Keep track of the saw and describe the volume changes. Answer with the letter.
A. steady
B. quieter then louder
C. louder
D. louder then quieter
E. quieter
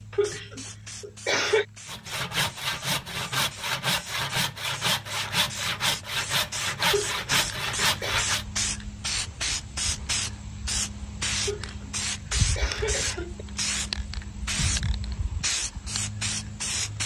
A.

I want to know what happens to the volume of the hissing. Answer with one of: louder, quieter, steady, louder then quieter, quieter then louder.
louder.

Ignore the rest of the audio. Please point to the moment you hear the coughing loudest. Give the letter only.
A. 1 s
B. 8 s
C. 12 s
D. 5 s
A.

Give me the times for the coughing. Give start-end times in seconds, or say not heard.
0.1-1.6, 6.8-8.2, 11.4-13.4.